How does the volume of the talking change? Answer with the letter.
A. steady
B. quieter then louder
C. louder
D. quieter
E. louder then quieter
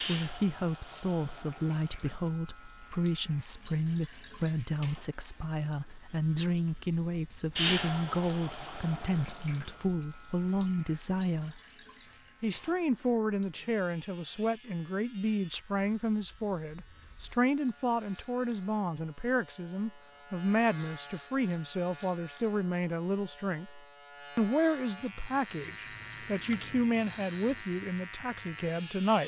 A.